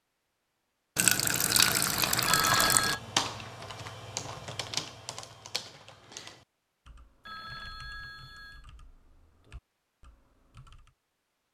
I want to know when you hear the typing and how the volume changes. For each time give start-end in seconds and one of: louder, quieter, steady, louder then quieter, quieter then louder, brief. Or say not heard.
2.8-10.9 quieter.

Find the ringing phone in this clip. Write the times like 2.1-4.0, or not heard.
2.2-3.0, 7.2-8.7.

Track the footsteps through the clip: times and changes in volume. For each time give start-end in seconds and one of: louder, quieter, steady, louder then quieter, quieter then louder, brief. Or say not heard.
not heard.